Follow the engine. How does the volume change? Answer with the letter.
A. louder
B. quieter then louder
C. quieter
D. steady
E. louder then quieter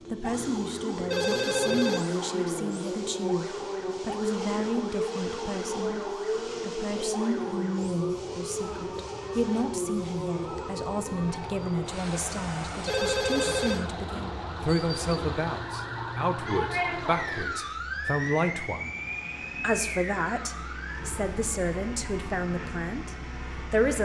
C.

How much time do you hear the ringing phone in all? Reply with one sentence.
You can hear the ringing phone for 2 seconds altogether.